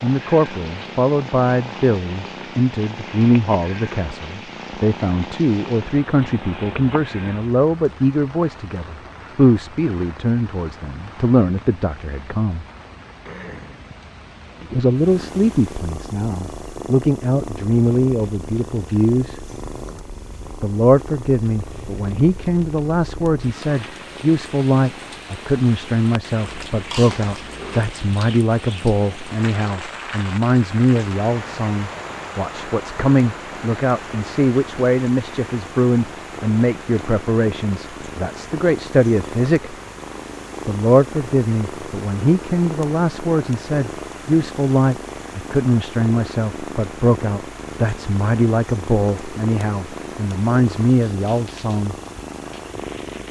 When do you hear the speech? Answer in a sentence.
You can hear the speech from 0.0 to 12.7 s, from 14.6 to 19.4 s, from 20.6 to 39.8 s and from 40.6 to 52.0 s.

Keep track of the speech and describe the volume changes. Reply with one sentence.
The volume of the speech stays about the same.